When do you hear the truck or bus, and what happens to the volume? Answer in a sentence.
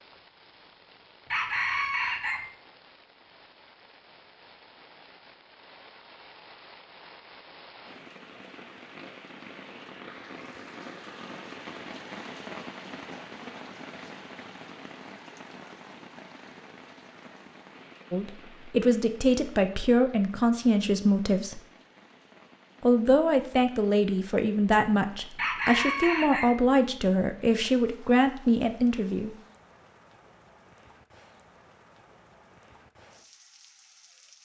You can't hear the truck or bus here.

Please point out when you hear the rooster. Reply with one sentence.
You can hear the rooster from 1.3 to 2.4 s and from 25.4 to 26.5 s.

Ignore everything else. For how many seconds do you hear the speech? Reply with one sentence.
You can hear the speech for 10 seconds altogether.